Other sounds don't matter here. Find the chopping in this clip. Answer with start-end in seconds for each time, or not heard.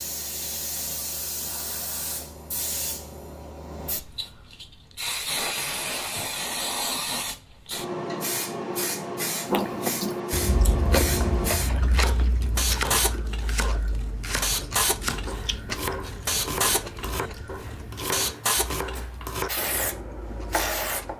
11.9-21.1.